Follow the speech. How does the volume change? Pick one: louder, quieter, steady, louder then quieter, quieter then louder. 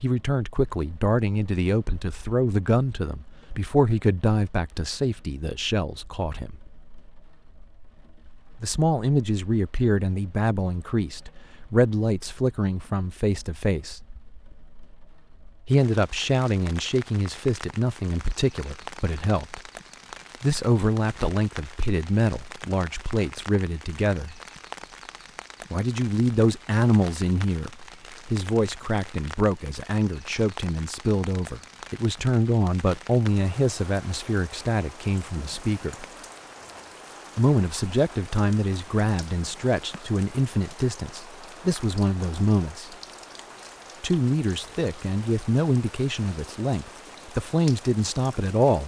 steady.